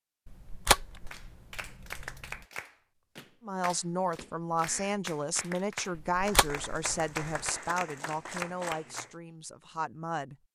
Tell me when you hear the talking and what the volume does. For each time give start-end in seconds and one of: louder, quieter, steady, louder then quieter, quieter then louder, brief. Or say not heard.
3.4-10.3 quieter.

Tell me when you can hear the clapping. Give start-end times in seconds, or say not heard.
1.1-9.2.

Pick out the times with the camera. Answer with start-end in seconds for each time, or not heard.
0.2-2.4, 6.0-7.5.